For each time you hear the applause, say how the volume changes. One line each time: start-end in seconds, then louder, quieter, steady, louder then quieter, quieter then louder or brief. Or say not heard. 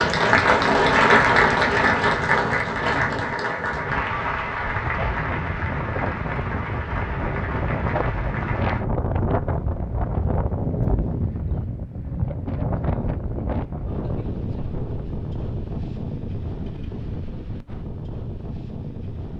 0.0-8.8 quieter.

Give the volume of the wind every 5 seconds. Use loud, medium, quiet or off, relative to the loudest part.
medium, loud, loud, medium.